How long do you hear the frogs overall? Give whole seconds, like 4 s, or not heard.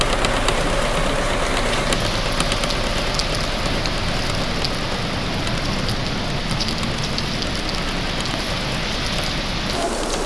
not heard.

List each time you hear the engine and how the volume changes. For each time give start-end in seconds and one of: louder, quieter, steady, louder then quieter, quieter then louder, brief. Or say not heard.
0.0-10.2 quieter.